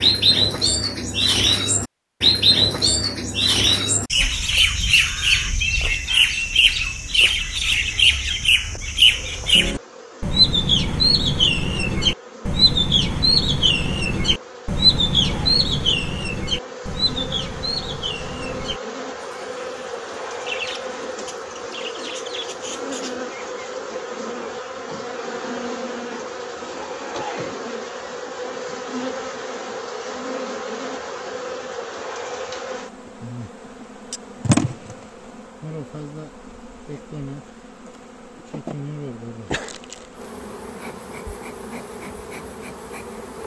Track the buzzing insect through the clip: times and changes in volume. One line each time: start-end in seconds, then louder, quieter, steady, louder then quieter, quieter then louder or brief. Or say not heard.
7.5-43.4 louder then quieter.